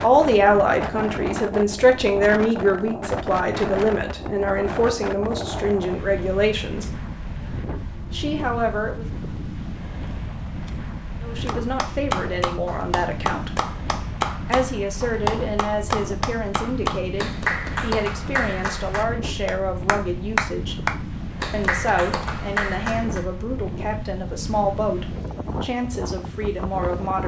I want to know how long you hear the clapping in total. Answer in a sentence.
The clapping can be heard for 12 seconds in total.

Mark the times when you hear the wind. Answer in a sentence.
You can hear the wind from 0.0 to 27.2 s.